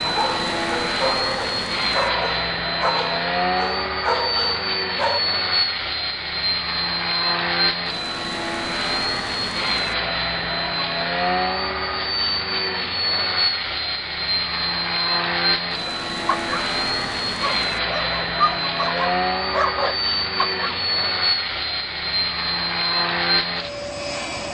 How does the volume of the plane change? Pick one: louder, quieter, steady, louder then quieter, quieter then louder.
steady.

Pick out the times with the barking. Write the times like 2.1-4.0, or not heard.
0.0-5.2, 15.8-21.1.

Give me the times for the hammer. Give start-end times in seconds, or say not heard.
not heard.